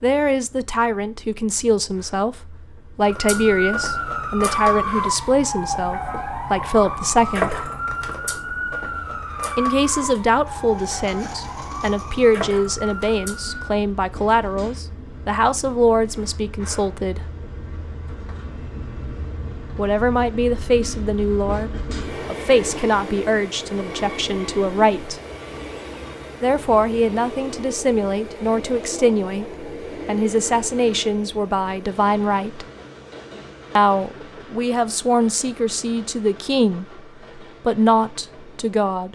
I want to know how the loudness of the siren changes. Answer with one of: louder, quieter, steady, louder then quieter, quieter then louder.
quieter.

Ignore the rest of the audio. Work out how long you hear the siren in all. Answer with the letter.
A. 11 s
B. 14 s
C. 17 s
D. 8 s
A.